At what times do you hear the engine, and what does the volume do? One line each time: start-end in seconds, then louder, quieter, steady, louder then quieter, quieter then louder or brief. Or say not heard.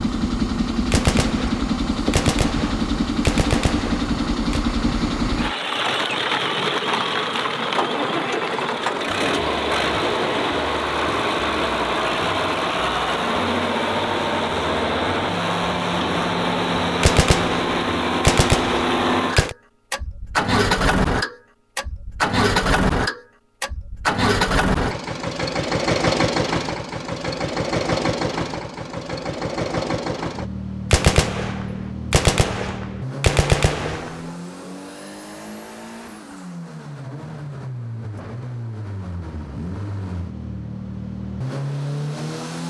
0.0-42.6 quieter.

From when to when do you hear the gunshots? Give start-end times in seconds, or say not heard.
0.9-4.7, 17.0-19.6, 30.9-34.3.